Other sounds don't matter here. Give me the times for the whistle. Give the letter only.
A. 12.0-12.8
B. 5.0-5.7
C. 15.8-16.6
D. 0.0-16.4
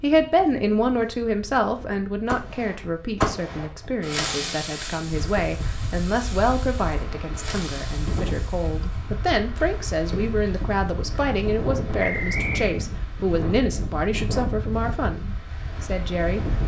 A.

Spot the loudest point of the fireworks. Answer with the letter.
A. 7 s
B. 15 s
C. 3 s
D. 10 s
C.